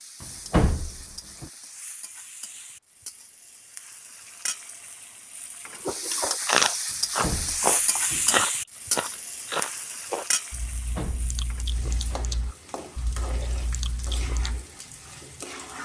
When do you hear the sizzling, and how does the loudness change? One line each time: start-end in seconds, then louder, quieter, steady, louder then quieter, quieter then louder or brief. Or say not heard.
0.0-15.8 louder then quieter.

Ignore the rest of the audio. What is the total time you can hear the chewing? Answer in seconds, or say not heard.
9 s.